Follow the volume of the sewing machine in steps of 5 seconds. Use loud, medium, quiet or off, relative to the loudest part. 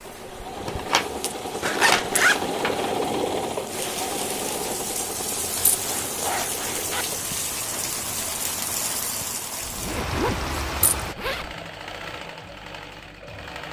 loud, medium, medium.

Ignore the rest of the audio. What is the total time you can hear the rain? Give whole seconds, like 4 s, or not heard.
11 s.